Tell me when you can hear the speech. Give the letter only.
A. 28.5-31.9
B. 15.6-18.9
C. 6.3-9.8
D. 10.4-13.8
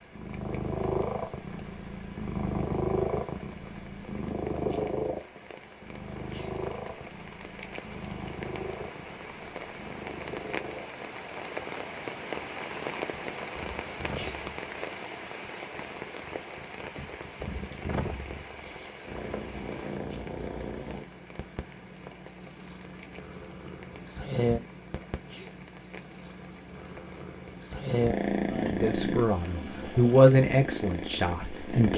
A.